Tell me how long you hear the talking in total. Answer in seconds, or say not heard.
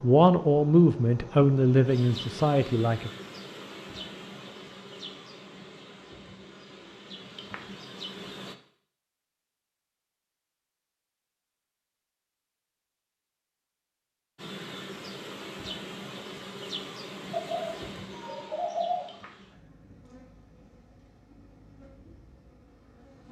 3 s.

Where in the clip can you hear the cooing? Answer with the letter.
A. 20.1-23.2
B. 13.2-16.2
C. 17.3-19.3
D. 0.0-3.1
C.